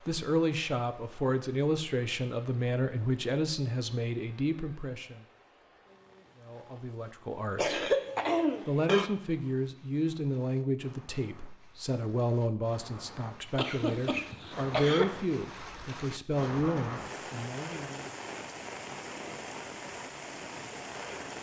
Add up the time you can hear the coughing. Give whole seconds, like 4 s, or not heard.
3 s.